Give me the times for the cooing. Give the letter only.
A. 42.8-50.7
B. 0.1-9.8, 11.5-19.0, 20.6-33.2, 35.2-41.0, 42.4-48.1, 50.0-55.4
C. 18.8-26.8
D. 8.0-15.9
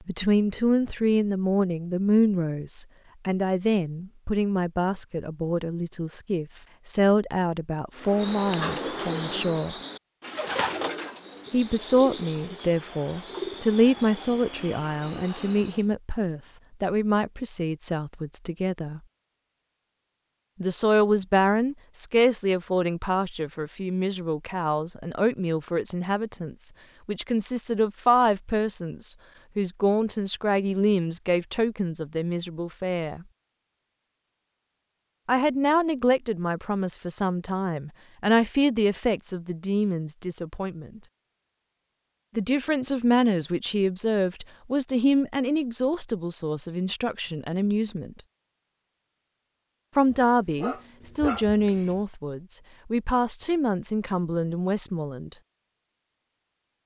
D.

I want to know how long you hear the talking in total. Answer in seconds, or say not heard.
47 s.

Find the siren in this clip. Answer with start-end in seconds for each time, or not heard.
not heard.